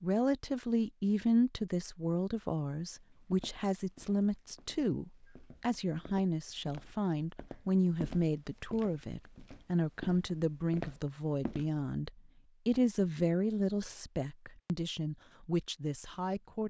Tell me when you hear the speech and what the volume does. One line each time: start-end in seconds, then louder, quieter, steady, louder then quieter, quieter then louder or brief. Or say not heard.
0.0-16.6 steady.